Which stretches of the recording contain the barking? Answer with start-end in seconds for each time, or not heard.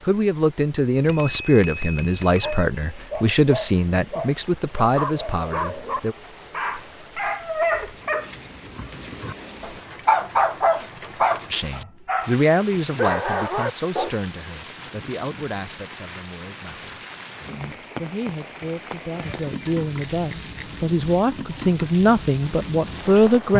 2.4-14.1.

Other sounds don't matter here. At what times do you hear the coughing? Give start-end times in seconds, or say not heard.
not heard.